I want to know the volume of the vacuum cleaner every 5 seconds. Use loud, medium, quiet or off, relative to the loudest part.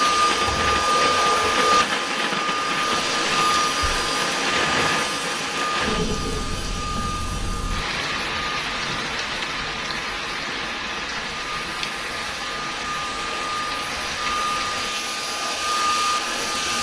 loud, medium, medium, loud.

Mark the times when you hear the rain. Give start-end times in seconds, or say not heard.
0.0-16.7.